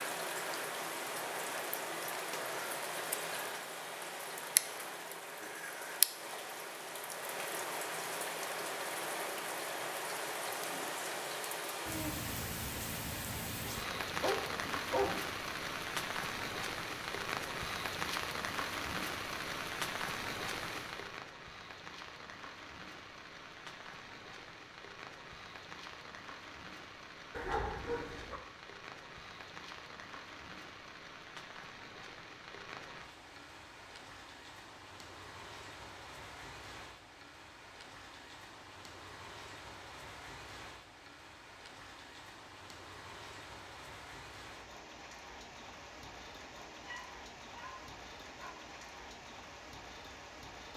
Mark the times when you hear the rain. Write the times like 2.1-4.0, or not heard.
0.0-50.7.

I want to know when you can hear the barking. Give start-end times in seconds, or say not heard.
13.8-15.2, 27.3-28.4, 46.7-48.5.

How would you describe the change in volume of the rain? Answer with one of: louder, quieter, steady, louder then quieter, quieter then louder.
quieter.